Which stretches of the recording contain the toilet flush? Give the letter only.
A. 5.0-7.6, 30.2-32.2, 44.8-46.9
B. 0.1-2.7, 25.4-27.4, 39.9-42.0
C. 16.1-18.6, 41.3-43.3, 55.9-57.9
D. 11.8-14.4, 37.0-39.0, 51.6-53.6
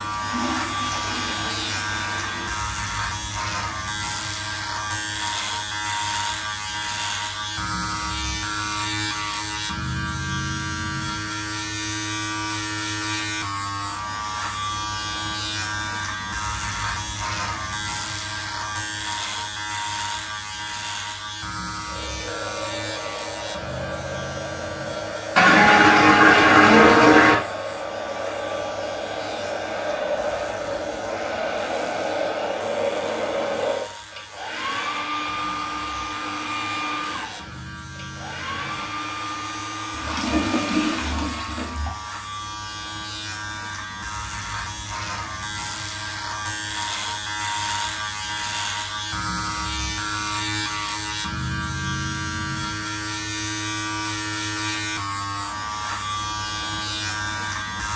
B.